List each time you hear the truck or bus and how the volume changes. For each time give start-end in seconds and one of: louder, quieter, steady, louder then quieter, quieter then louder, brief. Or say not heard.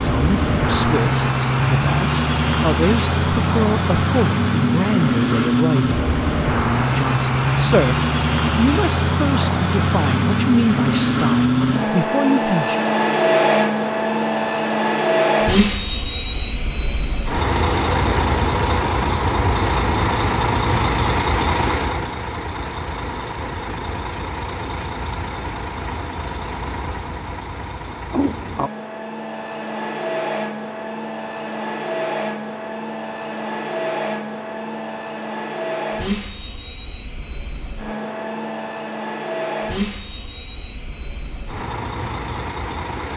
0.0-43.1 quieter.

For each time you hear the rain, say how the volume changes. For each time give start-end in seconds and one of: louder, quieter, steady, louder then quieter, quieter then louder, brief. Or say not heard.
not heard.